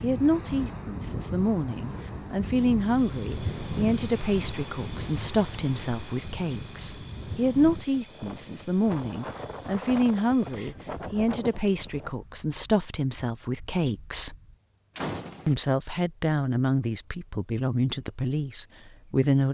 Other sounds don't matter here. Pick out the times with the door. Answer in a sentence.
The door can be heard from 14.9 to 15.6 s.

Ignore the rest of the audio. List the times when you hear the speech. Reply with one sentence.
You can hear the speech from 0.0 to 14.3 s and from 15.4 to 19.4 s.